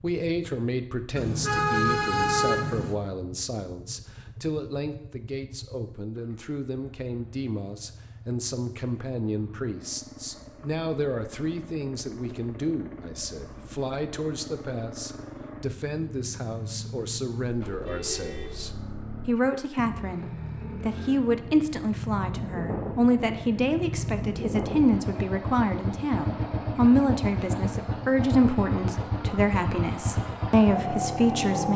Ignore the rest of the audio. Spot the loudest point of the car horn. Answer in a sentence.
The loudest moment of the car horn is at 2 seconds.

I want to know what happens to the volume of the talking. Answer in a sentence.
The volume of the talking goes up.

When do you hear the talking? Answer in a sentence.
The talking can be heard from 0.0 to 31.7 s.